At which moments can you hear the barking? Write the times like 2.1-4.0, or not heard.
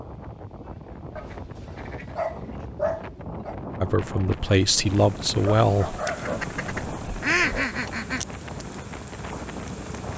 1.1-3.5, 5.4-7.8.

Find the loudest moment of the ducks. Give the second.
7 s.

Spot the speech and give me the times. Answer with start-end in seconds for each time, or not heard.
3.8-6.0.